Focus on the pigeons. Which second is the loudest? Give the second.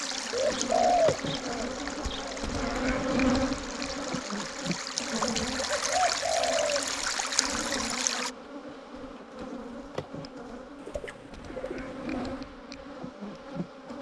1 s.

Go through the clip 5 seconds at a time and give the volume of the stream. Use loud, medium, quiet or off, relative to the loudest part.
medium, loud, off.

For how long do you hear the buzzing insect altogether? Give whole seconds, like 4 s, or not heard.
14 s.